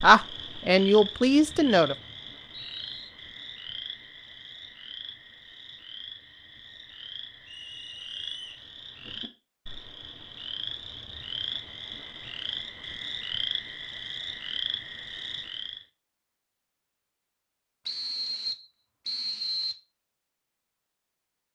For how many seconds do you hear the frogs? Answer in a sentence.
The frogs can be heard for 16 seconds in total.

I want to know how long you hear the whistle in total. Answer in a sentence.
The whistle can be heard for 5 seconds in total.